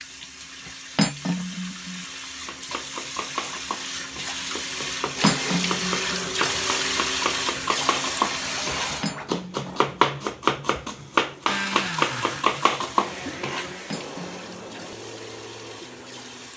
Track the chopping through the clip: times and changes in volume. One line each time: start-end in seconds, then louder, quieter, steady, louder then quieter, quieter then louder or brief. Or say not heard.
2.5-13.7 louder.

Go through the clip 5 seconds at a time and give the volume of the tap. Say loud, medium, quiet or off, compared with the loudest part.
medium, loud, quiet, quiet.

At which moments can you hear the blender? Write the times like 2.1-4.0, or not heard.
5.2-9.8, 11.4-16.5.